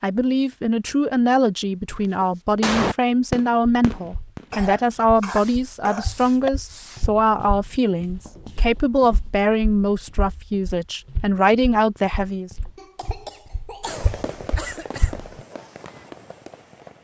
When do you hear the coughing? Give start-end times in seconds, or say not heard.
4.5-6.5, 12.8-14.2.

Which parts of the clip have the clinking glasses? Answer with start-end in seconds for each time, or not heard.
not heard.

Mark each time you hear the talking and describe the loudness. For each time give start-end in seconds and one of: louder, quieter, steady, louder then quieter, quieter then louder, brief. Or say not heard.
0.0-12.5 steady.